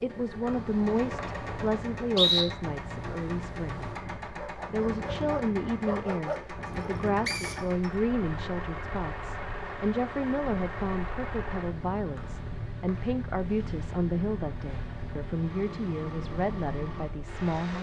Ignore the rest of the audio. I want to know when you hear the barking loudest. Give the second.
6 s.